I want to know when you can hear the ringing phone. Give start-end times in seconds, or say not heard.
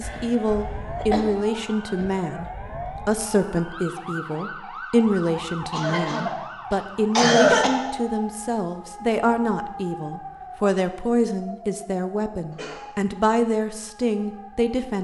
not heard.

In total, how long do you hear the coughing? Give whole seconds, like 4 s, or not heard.
4 s.